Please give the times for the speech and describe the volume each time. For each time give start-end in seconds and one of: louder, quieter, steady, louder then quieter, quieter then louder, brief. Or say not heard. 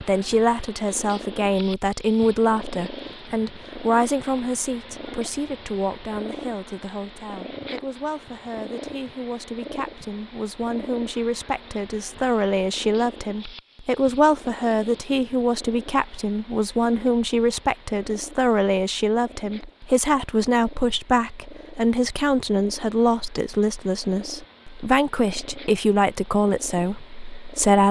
0.0-27.8 quieter then louder.